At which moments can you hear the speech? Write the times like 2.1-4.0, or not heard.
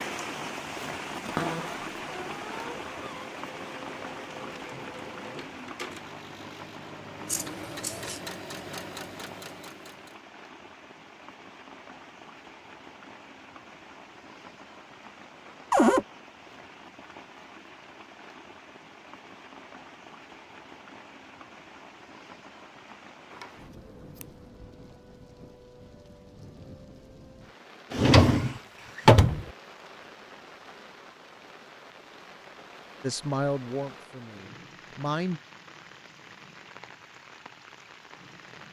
33.0-35.4.